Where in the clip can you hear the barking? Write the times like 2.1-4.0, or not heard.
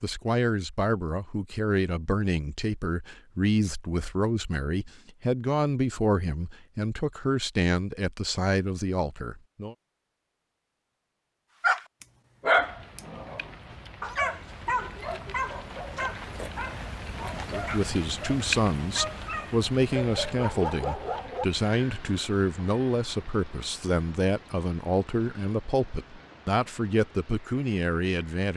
11.6-21.4.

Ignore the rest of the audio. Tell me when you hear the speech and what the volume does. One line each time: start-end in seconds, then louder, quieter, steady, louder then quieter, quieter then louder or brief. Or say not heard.
0.0-9.8 steady
17.4-28.5 steady.